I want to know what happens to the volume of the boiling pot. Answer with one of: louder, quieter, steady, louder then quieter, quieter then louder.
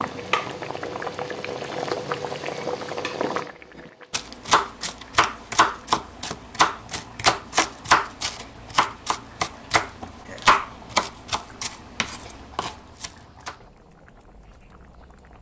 quieter.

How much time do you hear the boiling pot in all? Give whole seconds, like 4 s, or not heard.
15 s.